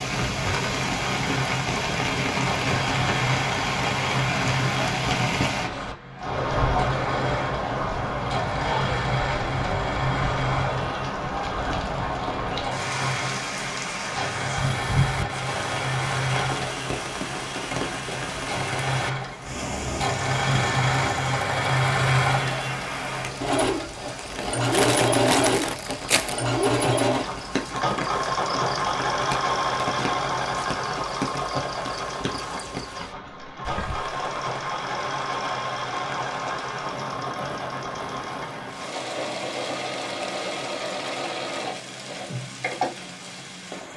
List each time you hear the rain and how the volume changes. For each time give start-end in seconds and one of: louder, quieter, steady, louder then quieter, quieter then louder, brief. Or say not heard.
0.0-43.9 quieter.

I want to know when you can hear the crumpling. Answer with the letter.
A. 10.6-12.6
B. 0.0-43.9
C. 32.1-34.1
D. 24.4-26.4
D.